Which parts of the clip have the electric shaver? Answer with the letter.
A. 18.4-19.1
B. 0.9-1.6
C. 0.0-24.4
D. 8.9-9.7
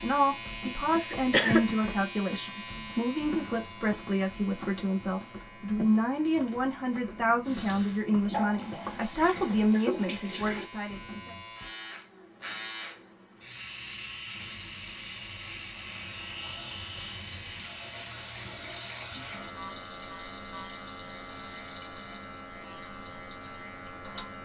C.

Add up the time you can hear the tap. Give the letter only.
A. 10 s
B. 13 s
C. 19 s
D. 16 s
B.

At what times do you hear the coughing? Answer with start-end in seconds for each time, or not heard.
0.9-1.6.